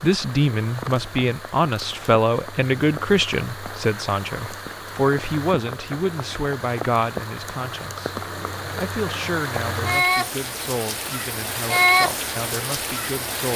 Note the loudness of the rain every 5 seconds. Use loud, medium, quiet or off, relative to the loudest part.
quiet, medium, loud.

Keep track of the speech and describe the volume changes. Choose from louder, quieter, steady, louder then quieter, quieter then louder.
quieter.